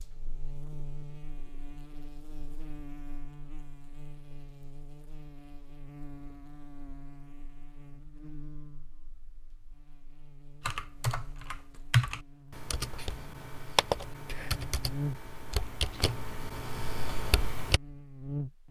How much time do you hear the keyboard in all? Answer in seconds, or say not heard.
7 s.